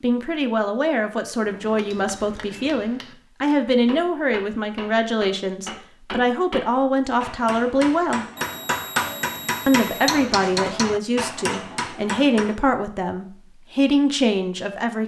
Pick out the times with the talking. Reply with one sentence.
The talking can be heard from 0.0 to 8.2 s and from 9.7 to 15.0 s.